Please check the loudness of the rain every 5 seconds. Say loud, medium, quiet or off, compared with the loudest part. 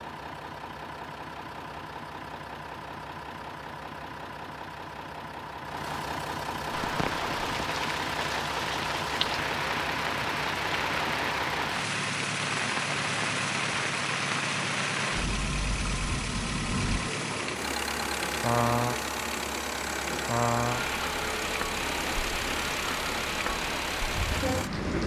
off, loud, loud, loud, loud.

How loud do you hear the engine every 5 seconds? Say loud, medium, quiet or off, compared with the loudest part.
medium, loud, loud, loud, loud.